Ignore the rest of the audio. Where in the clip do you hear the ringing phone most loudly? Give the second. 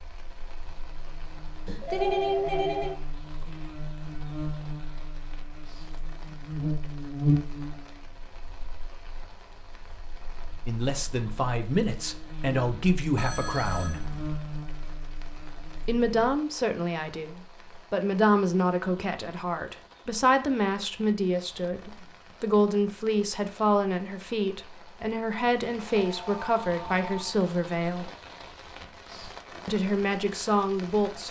2 s.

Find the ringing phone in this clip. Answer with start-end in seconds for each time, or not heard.
1.6-3.0, 13.2-14.2, 25.9-27.2.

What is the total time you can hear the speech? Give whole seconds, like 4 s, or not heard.
17 s.